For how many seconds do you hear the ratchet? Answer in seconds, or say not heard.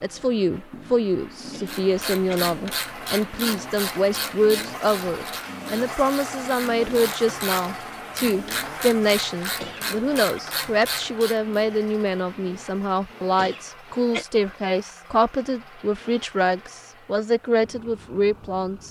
10 s.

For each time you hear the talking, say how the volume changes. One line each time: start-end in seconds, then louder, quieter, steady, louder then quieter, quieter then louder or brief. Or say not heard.
0.0-18.8 steady.